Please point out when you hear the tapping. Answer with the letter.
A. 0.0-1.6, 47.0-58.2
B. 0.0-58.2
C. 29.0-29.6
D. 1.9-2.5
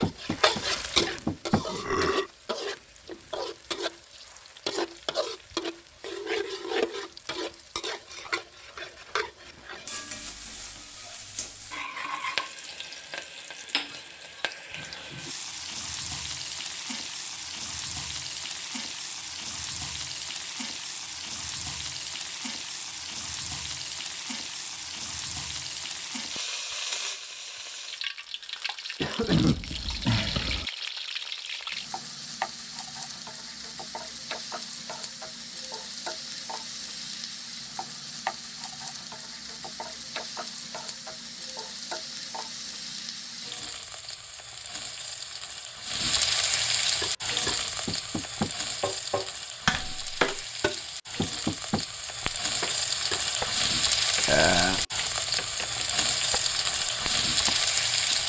A.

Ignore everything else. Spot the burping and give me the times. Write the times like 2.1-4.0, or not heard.
1.6-2.3, 29.2-30.6, 54.2-54.9.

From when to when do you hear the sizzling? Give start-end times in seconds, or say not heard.
0.0-58.2.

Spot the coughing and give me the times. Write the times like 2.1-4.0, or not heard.
29.0-29.6.